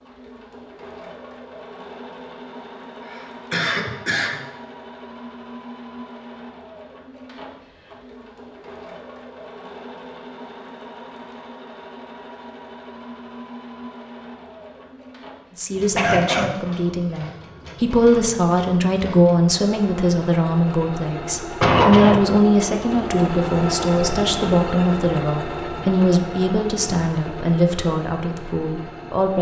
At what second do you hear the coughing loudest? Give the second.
22 s.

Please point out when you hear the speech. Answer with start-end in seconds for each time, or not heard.
15.6-29.3.